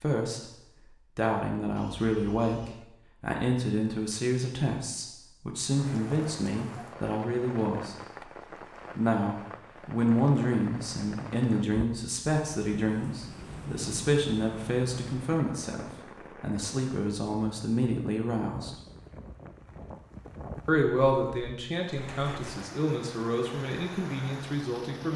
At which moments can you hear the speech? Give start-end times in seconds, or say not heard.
0.0-8.2, 8.9-18.8, 20.6-25.1.